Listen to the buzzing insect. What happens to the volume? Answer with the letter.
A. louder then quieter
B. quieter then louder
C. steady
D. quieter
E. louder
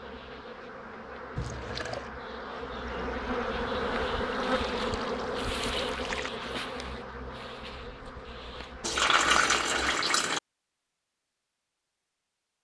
A.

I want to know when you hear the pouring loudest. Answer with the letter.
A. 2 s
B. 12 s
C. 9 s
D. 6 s
C.